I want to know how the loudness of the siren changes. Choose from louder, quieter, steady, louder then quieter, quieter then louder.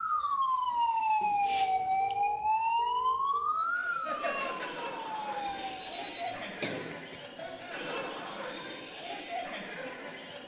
quieter.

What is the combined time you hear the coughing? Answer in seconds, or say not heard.
3 s.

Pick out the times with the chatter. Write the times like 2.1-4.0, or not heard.
3.5-10.4.